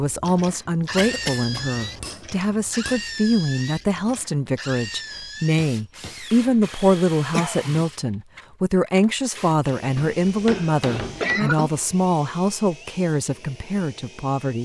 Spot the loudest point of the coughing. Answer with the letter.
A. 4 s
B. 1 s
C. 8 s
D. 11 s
D.